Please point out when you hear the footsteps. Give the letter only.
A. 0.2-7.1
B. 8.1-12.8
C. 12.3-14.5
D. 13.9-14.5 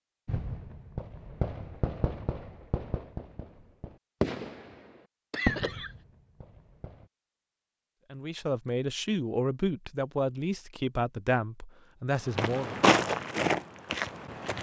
C.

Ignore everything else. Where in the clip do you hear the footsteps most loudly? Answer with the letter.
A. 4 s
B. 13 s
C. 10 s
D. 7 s
B.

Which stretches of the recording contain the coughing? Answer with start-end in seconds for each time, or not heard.
5.3-6.0.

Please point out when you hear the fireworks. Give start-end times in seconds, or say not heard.
0.2-7.1.